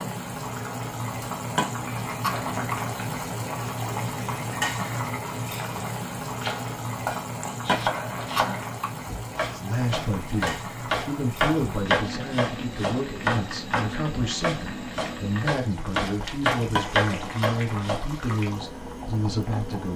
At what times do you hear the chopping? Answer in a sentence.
You can hear the chopping from 6.4 to 18.1 s.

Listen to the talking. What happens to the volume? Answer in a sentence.
The loudness of the talking stays about the same.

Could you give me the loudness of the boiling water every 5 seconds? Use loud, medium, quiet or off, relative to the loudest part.
loud, loud, medium, medium.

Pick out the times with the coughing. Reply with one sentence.
You can hear the coughing from 1.6 to 2.8 s, from 7.7 to 8.8 s and from 16.8 to 17.5 s.